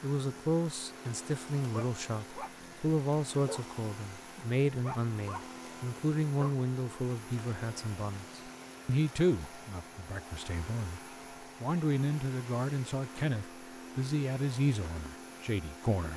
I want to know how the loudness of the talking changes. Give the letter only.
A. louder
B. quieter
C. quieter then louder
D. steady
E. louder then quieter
D.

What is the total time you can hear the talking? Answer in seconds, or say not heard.
16 s.